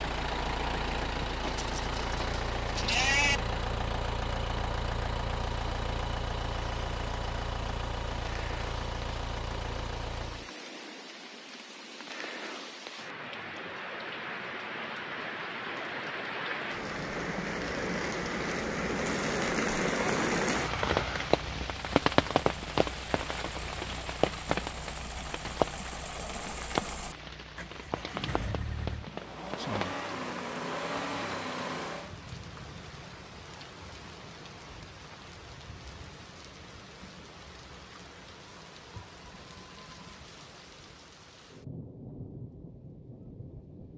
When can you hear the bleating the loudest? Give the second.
3 s.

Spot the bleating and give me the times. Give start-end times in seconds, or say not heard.
1.4-3.4.